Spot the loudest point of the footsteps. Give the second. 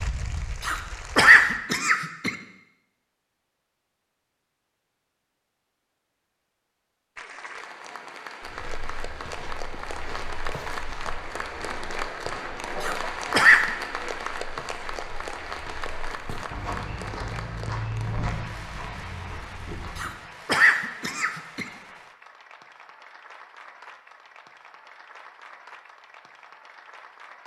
18 s.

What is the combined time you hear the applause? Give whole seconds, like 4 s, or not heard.
22 s.